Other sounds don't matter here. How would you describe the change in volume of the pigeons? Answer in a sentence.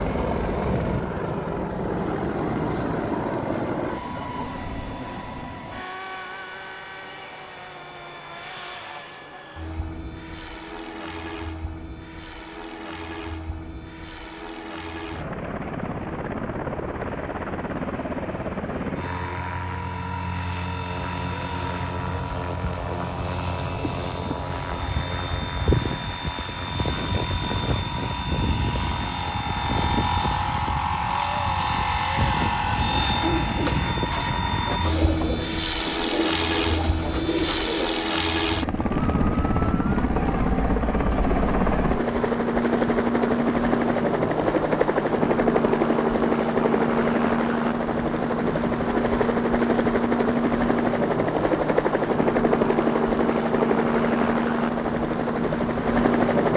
The volume of the pigeons goes down, then up.